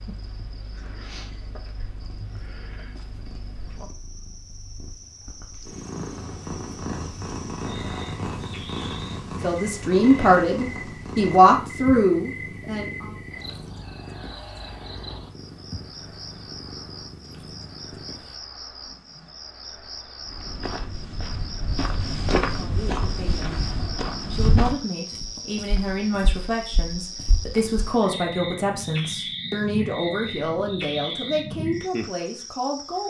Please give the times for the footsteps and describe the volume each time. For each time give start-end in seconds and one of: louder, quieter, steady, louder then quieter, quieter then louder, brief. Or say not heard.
20.2-27.9 louder then quieter.